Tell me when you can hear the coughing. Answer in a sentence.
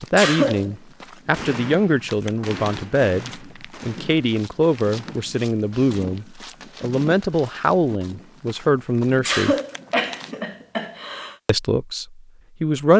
The coughing can be heard from 0.1 to 0.7 s and from 9.2 to 11.3 s.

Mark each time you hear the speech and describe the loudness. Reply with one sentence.
You can hear the speech from 0.0 to 9.6 s, at a steady volume; and briefly from 11.4 to 12.9 s.